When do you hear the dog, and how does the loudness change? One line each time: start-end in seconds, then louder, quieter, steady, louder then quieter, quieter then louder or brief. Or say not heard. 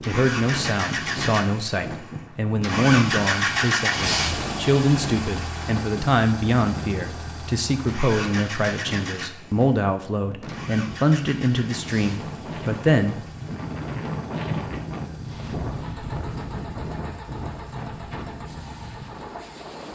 not heard.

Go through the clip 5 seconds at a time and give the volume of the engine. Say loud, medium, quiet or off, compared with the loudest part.
loud, medium, quiet, quiet.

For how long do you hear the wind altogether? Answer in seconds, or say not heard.
20 s.